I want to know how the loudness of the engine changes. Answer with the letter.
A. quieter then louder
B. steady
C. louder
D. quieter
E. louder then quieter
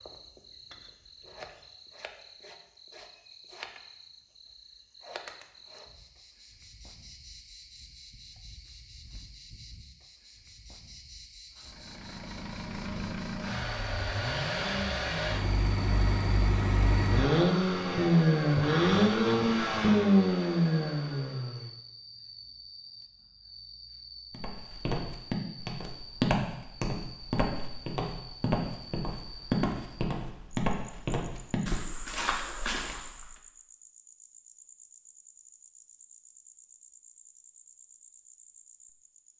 C.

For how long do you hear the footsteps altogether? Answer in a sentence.
The footsteps can be heard for 9 seconds in total.